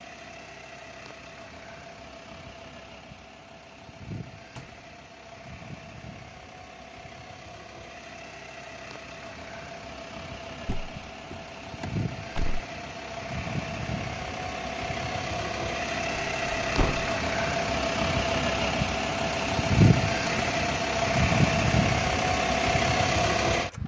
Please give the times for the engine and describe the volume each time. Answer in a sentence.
You can hear the engine from 0.0 to 23.8 s, getting louder.